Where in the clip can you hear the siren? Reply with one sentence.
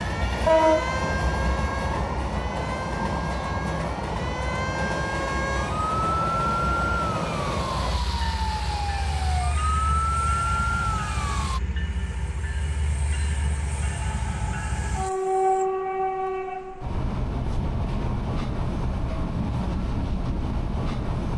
The siren can be heard from 0.0 to 11.6 s.